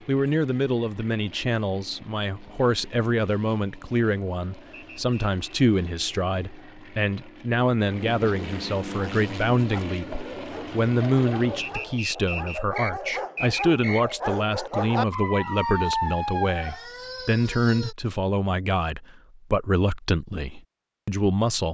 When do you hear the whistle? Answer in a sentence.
You can hear the whistle from 4.7 to 5.3 s and from 11.6 to 14.2 s.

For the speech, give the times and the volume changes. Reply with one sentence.
The speech can be heard from 0.1 to 21.6 s, at a steady volume.